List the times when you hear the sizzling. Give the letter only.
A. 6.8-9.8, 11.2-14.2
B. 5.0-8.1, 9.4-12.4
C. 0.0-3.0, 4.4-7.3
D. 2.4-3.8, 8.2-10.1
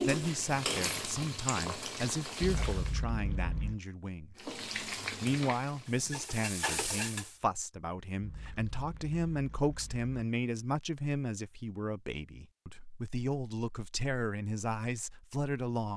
C.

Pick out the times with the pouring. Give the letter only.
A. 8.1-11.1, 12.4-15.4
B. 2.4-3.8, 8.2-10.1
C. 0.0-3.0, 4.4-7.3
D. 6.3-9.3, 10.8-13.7
B.